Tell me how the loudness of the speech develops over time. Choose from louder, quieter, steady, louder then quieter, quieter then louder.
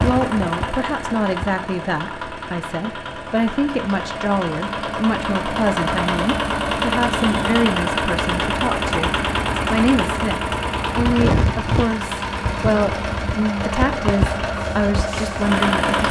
steady.